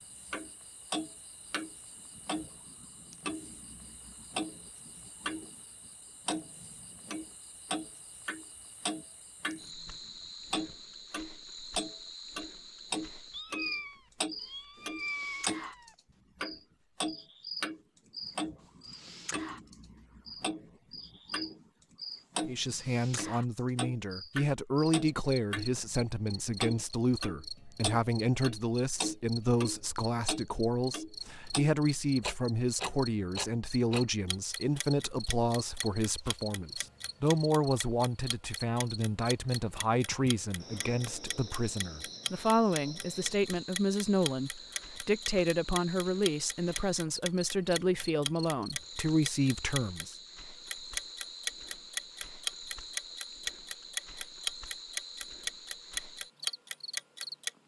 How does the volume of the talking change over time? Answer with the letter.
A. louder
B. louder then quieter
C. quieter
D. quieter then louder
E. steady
E.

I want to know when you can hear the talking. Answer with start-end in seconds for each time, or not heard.
22.4-50.1.